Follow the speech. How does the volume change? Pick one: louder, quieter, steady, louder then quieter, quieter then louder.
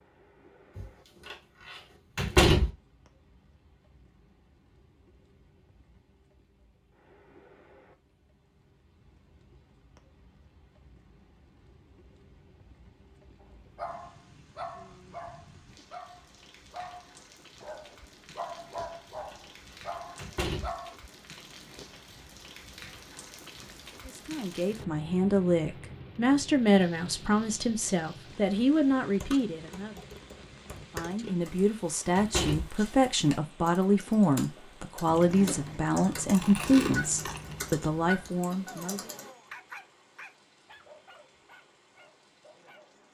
steady.